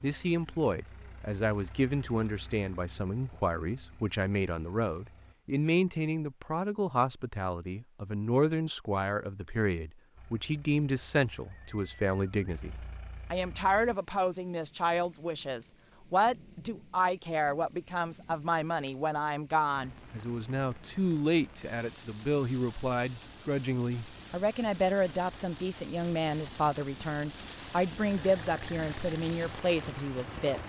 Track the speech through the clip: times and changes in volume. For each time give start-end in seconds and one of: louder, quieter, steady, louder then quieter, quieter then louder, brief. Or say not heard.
0.0-30.6 steady.